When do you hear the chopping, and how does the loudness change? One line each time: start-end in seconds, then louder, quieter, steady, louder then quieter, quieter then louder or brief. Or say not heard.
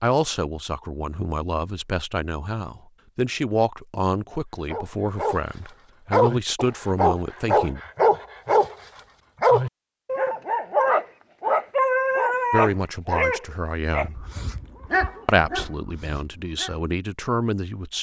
not heard.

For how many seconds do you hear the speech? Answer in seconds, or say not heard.
12 s.